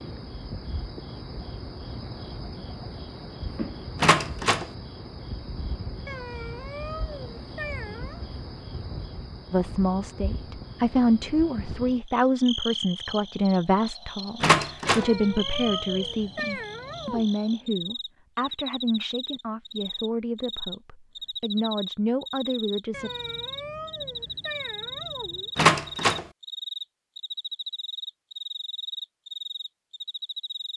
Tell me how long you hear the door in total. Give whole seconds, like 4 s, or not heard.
2 s.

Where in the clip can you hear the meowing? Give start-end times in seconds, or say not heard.
6.0-8.2, 14.8-17.3, 22.9-25.5.